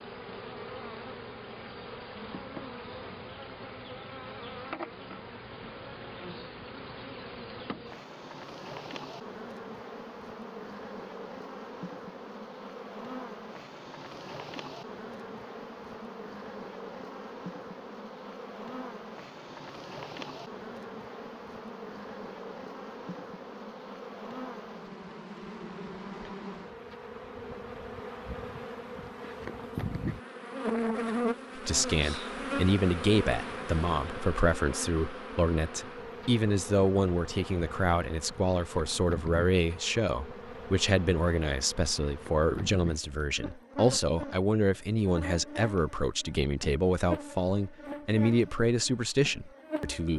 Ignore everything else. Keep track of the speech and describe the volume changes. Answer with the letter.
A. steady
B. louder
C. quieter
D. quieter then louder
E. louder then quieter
A.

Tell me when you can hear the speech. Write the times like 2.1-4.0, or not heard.
31.6-50.1.